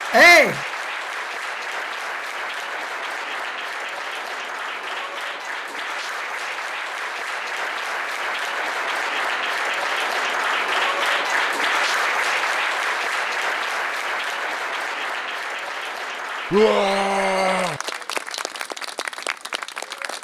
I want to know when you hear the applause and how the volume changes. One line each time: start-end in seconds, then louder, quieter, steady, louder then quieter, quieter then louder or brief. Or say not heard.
0.0-20.1 louder then quieter.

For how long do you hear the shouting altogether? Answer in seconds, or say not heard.
2 s.